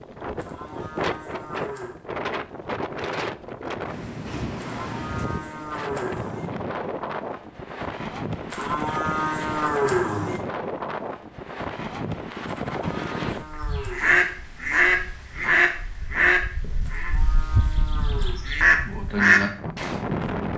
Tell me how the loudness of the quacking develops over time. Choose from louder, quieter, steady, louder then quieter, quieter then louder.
quieter then louder.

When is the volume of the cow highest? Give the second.
10 s.